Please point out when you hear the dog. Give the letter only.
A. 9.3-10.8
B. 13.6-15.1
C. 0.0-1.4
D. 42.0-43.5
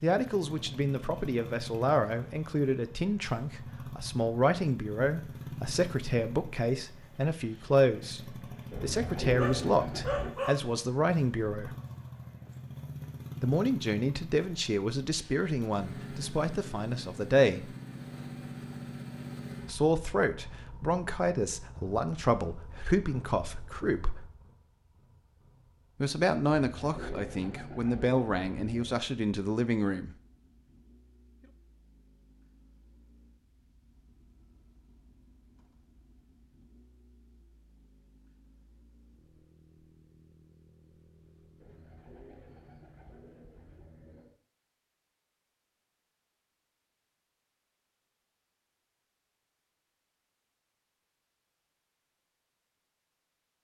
A.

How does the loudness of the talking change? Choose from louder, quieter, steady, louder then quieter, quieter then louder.
steady.